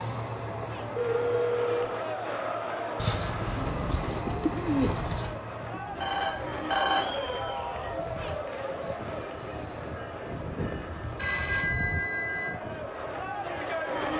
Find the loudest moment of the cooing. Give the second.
5 s.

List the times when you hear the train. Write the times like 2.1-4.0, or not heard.
0.0-14.1.